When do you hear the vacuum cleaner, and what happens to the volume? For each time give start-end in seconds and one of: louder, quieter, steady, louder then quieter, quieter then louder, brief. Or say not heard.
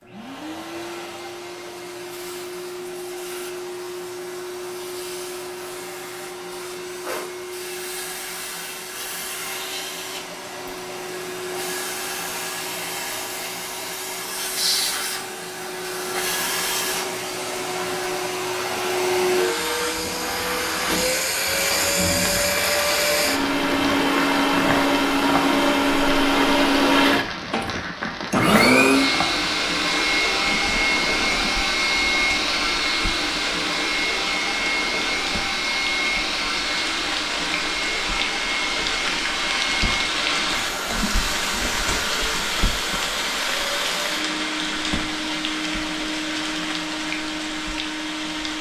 0.0-48.5 louder then quieter.